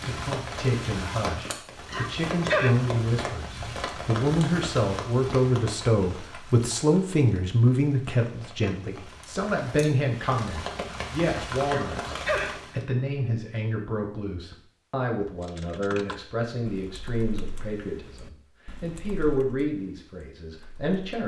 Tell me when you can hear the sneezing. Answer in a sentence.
You can hear the sneezing from 1.9 to 2.8 s and from 11.7 to 12.6 s.